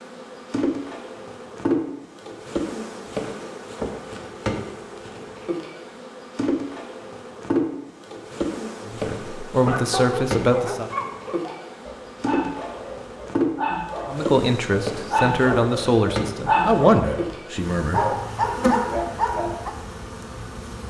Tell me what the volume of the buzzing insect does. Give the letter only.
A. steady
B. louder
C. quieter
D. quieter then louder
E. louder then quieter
A.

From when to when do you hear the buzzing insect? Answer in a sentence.
You can hear the buzzing insect from 0.0 to 20.8 s.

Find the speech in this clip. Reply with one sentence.
The speech can be heard from 8.8 to 10.9 s and from 14.1 to 18.0 s.